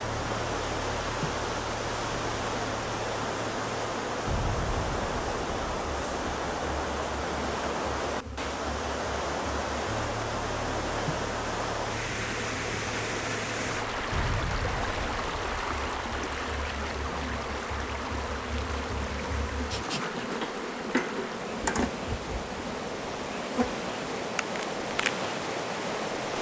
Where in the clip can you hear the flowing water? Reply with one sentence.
The flowing water can be heard from 0.0 to 26.3 s.